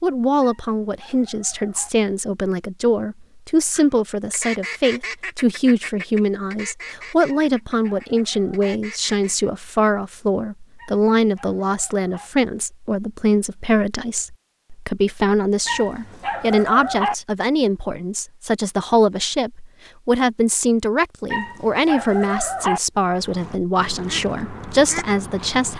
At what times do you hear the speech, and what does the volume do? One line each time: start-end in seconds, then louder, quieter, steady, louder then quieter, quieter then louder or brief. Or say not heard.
0.0-25.7 steady.